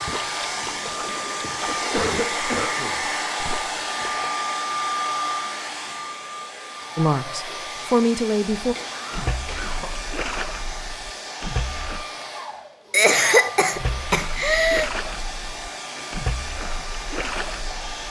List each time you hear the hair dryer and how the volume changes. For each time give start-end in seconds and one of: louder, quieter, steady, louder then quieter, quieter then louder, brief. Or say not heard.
0.0-18.0 quieter.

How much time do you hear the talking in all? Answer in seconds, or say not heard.
2 s.